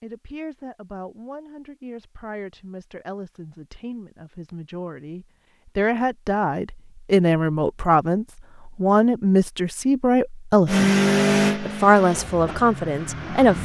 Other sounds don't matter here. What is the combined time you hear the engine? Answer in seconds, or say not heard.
3 s.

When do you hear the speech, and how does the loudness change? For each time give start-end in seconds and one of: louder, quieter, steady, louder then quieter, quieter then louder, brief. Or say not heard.
0.0-10.9 louder
11.6-13.6 brief.